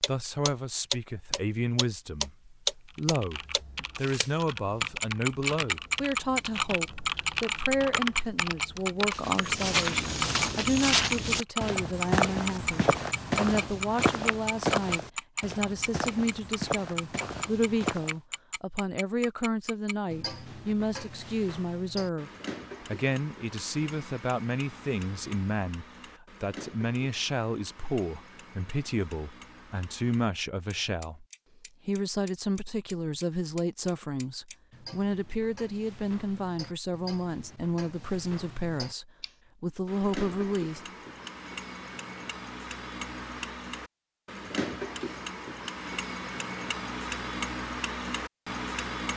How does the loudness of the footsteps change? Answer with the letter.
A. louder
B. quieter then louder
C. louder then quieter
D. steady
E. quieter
E.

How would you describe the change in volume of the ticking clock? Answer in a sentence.
The loudness of the ticking clock goes down, then up.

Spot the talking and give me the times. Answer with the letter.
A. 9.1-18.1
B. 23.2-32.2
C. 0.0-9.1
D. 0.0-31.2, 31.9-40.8
D.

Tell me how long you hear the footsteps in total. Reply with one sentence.
You can hear the footsteps for 9 seconds altogether.